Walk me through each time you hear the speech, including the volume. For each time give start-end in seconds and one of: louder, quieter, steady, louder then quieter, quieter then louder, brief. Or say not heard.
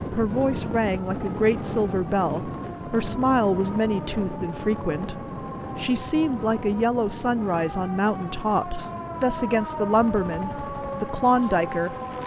0.0-11.9 steady.